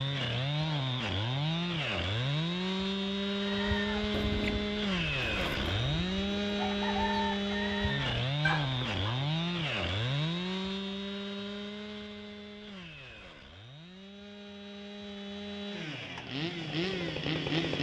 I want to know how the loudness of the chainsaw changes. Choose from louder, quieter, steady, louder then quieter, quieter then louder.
quieter.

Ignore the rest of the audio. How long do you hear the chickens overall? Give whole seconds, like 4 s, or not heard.
6 s.